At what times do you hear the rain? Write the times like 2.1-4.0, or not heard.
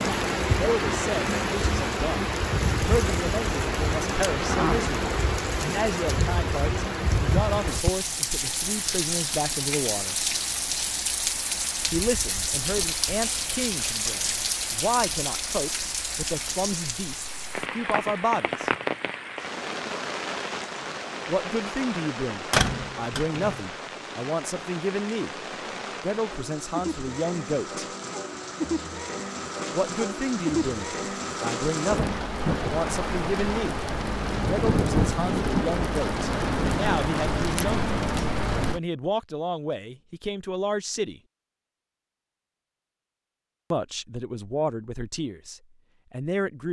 0.0-38.8.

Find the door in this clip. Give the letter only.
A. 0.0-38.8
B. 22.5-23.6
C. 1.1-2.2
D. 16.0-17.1
B.